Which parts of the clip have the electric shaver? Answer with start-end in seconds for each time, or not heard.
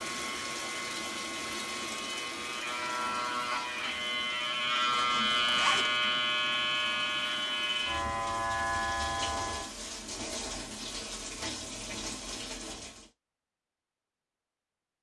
0.0-9.8.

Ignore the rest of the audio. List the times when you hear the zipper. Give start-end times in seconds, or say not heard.
4.9-6.0.